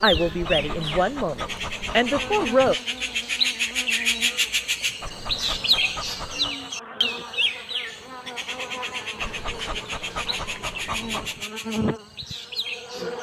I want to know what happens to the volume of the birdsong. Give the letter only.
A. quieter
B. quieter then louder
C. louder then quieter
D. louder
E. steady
C.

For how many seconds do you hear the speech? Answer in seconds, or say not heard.
3 s.